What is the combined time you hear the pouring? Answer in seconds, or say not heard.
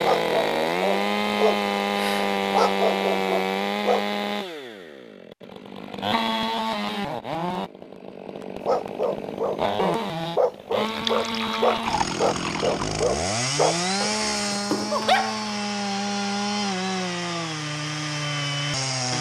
2 s.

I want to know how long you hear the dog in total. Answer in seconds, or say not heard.
11 s.